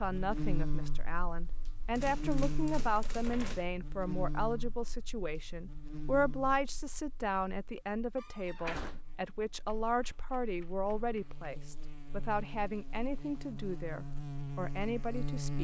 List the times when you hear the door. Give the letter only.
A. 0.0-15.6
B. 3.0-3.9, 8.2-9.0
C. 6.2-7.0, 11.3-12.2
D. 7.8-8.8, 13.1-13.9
B.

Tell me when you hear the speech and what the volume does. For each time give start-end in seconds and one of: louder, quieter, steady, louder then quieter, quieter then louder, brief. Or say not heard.
0.0-15.6 steady.